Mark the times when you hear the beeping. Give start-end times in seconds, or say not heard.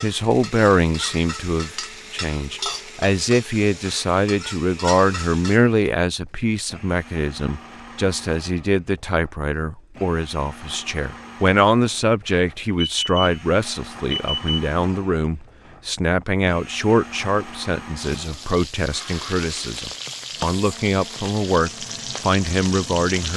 12.2-13.4, 14.1-14.6.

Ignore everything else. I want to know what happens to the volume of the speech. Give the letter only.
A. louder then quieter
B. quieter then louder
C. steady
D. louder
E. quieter
C.